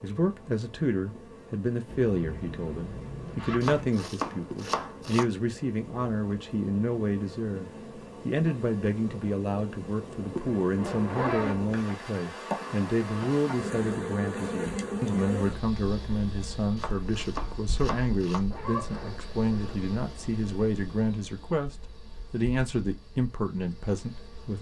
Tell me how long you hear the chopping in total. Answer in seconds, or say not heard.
3 s.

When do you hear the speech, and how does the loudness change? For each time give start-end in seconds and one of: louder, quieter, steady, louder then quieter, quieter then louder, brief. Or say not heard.
0.0-24.5 steady.